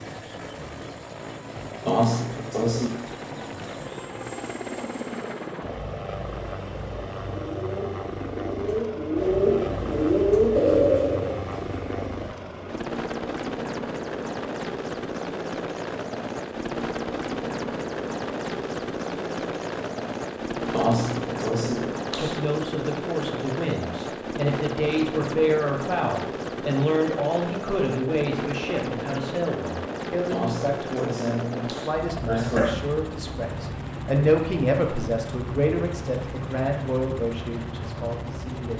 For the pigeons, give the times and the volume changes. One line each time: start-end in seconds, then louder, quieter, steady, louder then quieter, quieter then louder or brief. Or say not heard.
7.5-12.2 louder then quieter.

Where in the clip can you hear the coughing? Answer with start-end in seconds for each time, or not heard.
1.9-3.0, 20.7-22.4, 30.3-32.8.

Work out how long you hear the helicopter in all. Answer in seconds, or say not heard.
39 s.